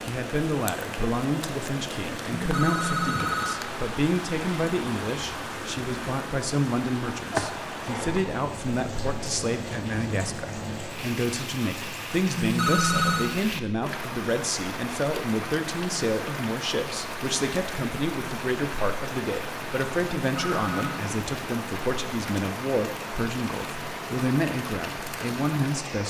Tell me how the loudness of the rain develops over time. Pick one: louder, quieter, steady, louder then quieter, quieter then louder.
steady.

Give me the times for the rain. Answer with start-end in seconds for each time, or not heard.
0.0-26.0.